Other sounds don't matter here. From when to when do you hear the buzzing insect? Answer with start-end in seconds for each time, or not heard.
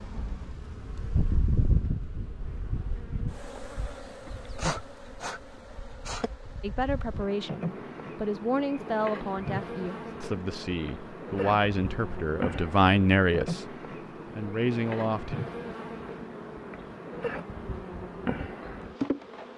0.0-19.5.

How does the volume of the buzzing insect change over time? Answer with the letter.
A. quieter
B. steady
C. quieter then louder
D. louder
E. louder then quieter
B.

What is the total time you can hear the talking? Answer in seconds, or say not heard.
9 s.